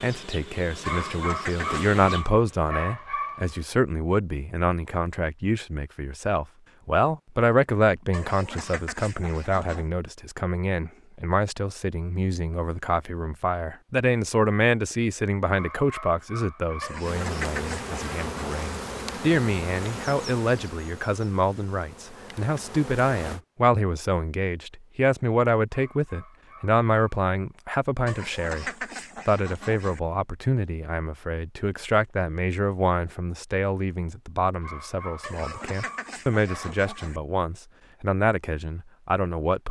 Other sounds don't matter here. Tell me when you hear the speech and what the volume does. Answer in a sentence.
You can hear the speech from 0.0 to 39.6 s, at a steady volume.